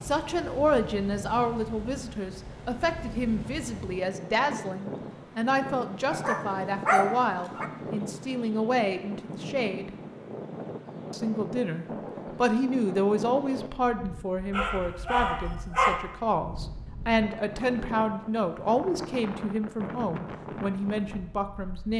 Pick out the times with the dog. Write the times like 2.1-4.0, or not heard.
6.1-7.7, 14.5-16.0.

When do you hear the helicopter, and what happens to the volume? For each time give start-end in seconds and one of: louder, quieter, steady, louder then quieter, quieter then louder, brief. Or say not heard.
not heard.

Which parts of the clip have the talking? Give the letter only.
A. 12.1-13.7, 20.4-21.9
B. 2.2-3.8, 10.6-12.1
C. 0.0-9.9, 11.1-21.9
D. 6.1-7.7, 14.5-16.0
C.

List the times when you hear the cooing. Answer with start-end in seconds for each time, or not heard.
not heard.